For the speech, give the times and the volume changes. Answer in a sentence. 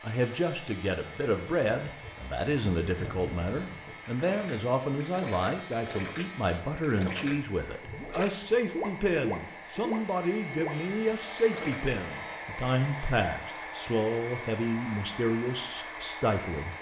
You can hear the speech from 0.0 to 16.7 s, at a steady volume.